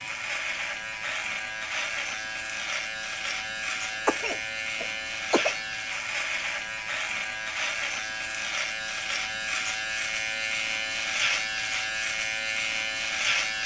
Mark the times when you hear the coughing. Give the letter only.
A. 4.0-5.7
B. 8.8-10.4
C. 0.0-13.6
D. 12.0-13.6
A.